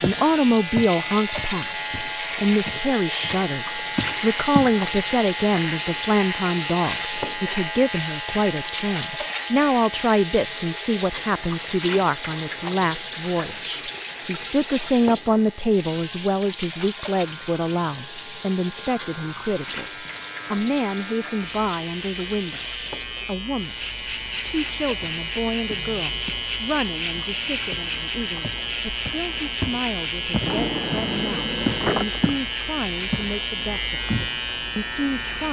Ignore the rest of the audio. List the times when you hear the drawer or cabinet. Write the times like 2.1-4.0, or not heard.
30.4-32.4.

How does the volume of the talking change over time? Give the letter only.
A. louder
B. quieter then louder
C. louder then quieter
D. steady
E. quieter
E.